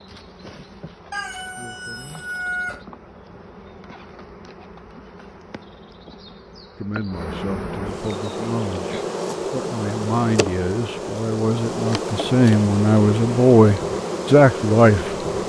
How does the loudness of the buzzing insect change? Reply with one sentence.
The loudness of the buzzing insect goes up.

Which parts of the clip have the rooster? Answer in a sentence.
You can hear the rooster from 1.1 to 2.9 s.